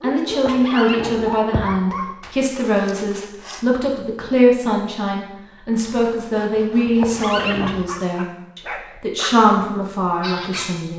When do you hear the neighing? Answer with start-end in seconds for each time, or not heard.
0.2-1.8, 6.8-7.8.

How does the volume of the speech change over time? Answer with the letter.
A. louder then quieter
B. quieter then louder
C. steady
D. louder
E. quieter
C.